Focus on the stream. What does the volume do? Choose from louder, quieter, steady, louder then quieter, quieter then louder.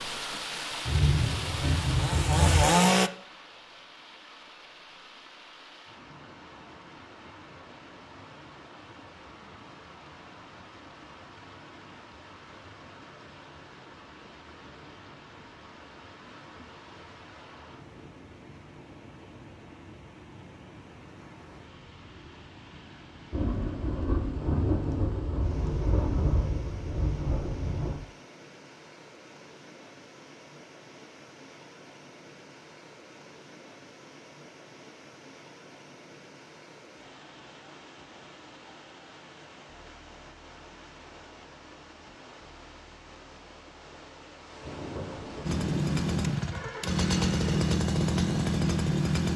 quieter.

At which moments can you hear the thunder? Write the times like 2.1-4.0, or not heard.
0.8-2.6, 23.3-28.0, 44.6-46.2.